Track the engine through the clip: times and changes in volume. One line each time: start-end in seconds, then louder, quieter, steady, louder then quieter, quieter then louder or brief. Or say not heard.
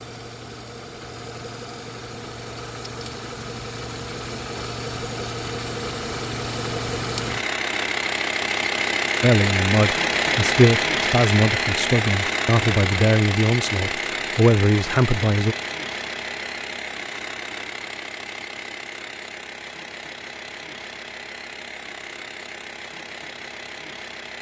0.0-24.3 louder then quieter.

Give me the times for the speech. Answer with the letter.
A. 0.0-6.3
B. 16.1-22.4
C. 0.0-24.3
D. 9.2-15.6
D.